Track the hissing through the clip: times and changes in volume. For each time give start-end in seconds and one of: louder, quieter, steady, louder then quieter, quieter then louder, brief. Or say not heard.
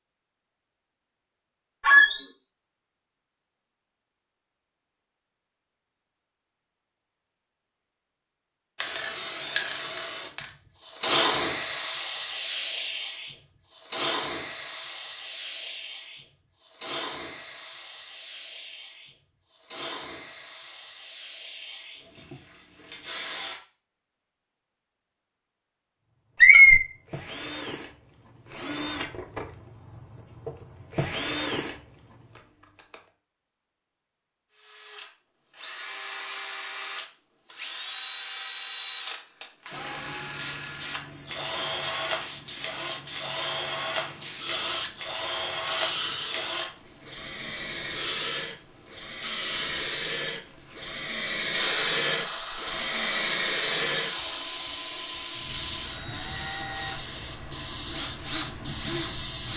8.8-23.6 quieter
39.7-59.5 louder then quieter.